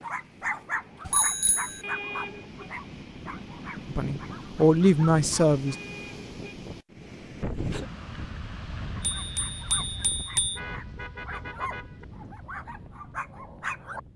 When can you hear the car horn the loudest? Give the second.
2 s.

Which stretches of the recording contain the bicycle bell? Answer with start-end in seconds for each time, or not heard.
1.1-1.8, 9.2-10.6.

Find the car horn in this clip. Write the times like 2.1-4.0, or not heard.
1.8-2.7, 5.7-6.5, 10.6-12.1.